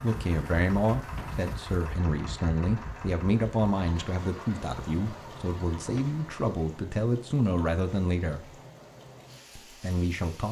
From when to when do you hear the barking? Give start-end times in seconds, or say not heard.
not heard.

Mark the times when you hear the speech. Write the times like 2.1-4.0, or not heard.
0.0-8.6, 9.6-10.4.